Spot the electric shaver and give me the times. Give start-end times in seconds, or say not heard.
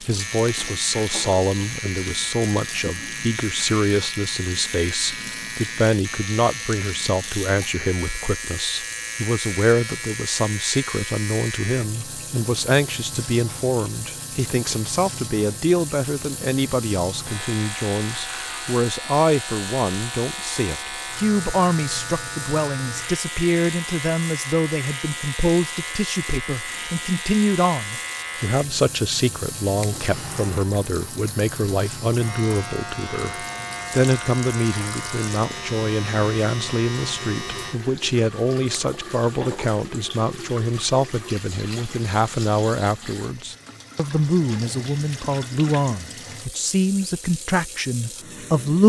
0.0-37.8.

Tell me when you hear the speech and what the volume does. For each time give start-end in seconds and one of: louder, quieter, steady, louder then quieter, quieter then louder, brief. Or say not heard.
0.1-48.8 steady.